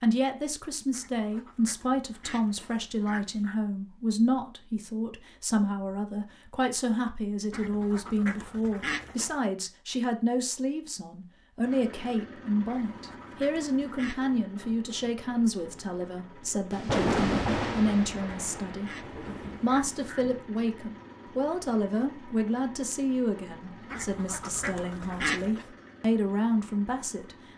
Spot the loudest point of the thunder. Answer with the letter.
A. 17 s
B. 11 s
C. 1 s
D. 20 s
A.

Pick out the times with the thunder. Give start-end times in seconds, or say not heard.
16.7-20.4.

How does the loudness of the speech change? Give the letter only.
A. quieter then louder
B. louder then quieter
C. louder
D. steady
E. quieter
D.